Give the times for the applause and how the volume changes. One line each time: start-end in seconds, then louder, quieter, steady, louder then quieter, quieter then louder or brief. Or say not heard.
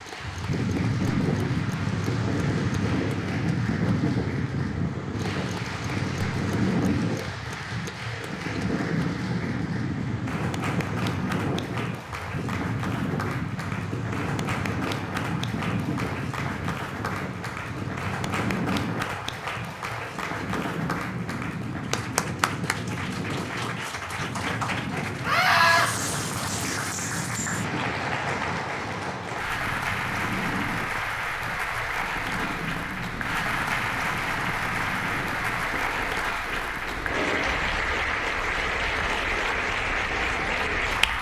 0.0-41.1 louder.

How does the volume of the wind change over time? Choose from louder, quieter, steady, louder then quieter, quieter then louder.
quieter.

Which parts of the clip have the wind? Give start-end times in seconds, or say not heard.
0.0-41.1.